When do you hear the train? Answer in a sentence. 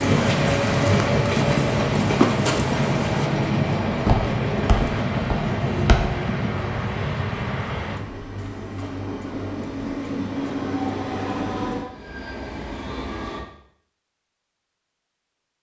You can hear the train from 0.0 to 13.4 s.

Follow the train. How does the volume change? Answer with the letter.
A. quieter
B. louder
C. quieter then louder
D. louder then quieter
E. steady
A.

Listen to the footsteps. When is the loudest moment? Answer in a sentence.
The volume of the footsteps peaks at 2 seconds.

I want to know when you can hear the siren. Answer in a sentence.
You can't hear the siren here.